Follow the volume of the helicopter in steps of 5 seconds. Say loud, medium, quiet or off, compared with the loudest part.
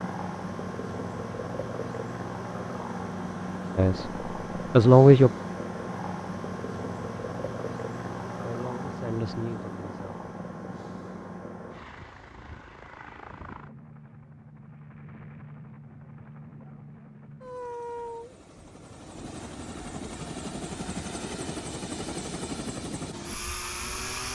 loud, loud, medium, medium, loud.